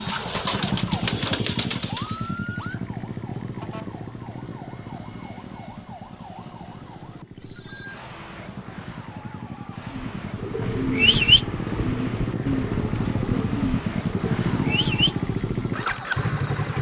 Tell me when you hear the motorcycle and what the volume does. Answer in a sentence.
The motorcycle can be heard from 0.0 to 16.7 s, getting quieter then louder.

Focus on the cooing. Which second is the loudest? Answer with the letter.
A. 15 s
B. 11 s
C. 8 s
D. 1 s
B.